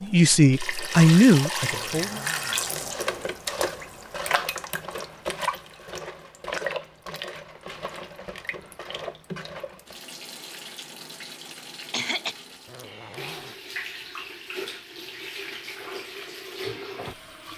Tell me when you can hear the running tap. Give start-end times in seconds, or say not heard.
0.0-17.5.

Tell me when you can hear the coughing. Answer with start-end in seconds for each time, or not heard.
11.4-12.3.